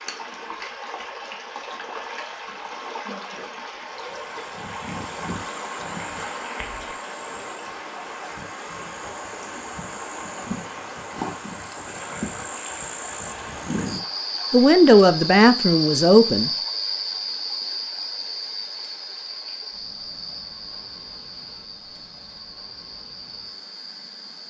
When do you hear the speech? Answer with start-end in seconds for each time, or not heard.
14.5-16.5.